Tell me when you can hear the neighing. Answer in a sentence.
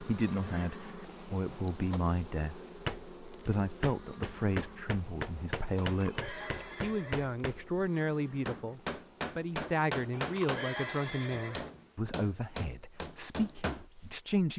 You can hear the neighing from 0.1 to 0.6 s, from 5.8 to 7.3 s and from 10.1 to 11.7 s.